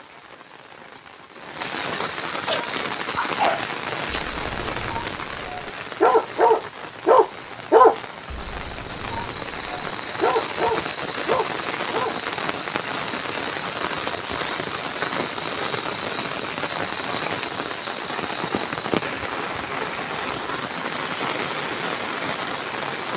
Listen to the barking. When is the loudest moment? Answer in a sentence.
The volume of the barking peaks at 8 seconds.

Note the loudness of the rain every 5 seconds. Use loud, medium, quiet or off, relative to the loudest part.
loud, medium, loud, loud, loud.